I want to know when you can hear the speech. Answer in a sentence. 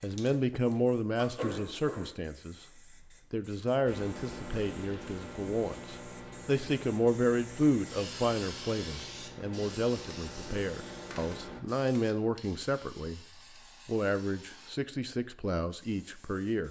The speech can be heard from 0.0 to 2.6 s, from 3.3 to 13.2 s and from 13.8 to 16.6 s.